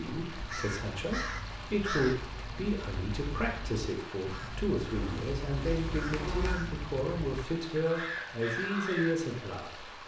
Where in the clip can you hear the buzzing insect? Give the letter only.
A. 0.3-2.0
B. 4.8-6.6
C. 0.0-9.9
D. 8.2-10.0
B.